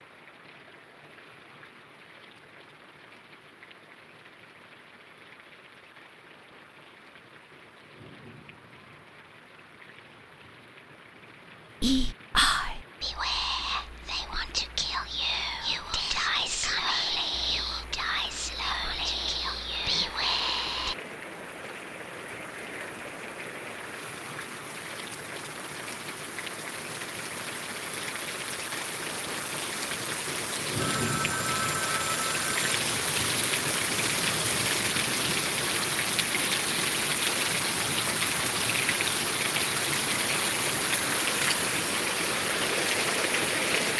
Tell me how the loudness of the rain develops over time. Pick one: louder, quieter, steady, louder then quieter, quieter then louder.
louder.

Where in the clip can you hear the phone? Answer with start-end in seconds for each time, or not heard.
30.8-32.8.